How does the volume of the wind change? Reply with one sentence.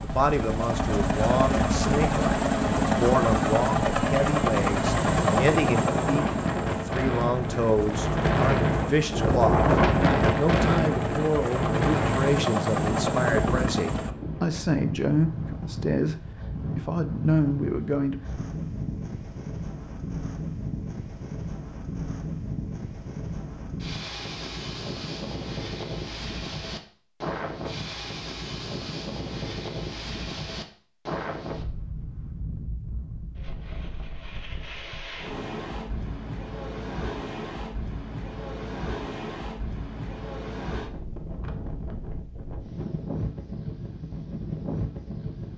The loudness of the wind goes down.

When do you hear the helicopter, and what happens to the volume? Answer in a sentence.
The helicopter can be heard from 0.0 to 14.1 s, getting quieter then louder.